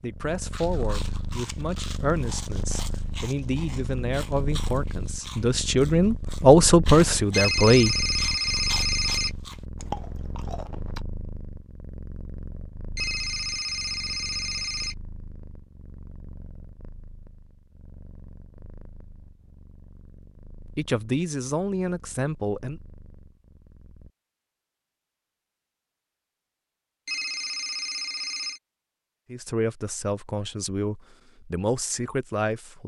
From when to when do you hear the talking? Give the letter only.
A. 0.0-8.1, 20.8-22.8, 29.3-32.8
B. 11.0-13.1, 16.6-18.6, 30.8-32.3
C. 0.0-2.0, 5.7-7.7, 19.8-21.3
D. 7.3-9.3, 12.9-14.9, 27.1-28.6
A.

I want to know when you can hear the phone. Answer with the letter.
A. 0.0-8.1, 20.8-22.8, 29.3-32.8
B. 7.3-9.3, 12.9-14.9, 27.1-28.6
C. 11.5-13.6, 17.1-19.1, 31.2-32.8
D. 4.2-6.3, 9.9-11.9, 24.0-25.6
B.